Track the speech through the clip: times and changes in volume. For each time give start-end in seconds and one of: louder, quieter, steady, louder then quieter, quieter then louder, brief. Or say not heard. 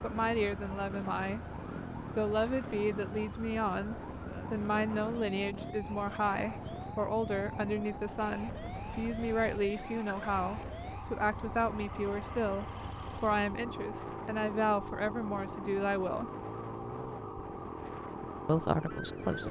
0.0-1.4 brief
2.1-16.3 steady
18.4-19.4 brief.